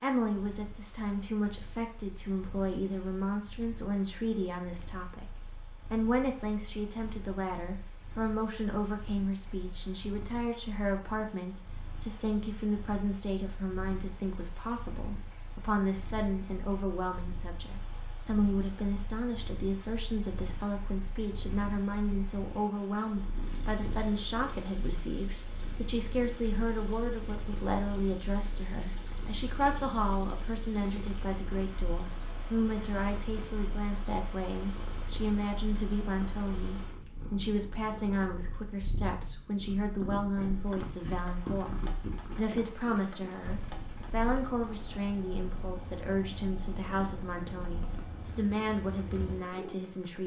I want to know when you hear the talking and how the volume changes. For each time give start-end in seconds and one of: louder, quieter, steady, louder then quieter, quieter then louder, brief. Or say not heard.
0.0-5.3 steady
5.9-50.2 steady.